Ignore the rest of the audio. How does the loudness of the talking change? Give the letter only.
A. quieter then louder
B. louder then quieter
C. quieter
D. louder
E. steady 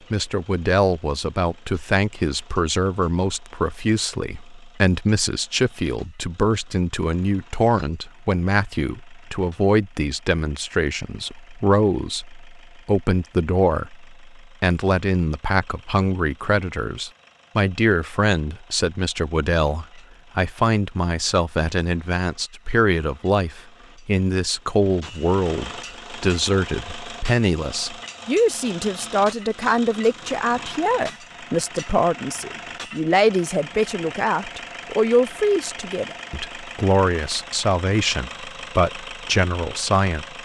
E.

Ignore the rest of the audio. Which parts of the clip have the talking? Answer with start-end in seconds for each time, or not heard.
0.1-40.4.